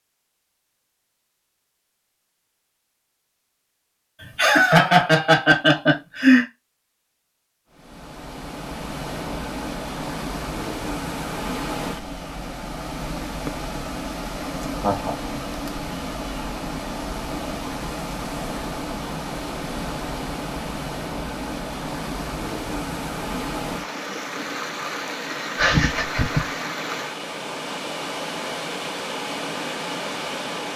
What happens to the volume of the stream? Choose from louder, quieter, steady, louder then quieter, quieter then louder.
steady.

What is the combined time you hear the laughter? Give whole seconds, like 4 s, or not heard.
4 s.